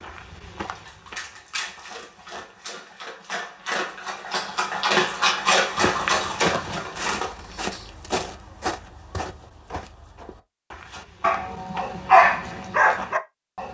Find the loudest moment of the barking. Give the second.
12 s.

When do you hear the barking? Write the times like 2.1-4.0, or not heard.
0.6-7.3, 10.9-13.6.